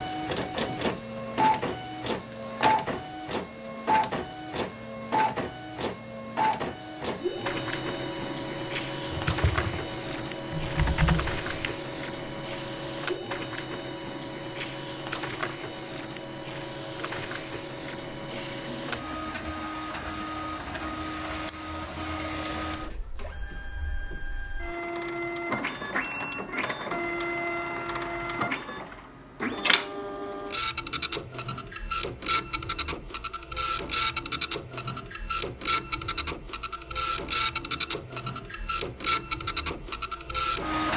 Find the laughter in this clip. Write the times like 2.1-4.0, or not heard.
18.3-19.8.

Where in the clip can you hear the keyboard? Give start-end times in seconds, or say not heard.
9.1-11.7.